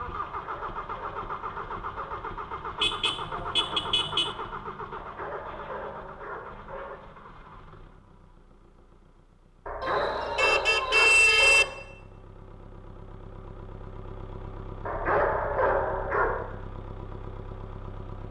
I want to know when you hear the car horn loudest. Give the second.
11 s.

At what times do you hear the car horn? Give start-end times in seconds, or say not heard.
2.8-4.3, 9.8-11.7.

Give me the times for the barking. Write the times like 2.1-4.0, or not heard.
0.2-2.2, 5.0-7.0, 9.7-11.7, 14.8-16.5.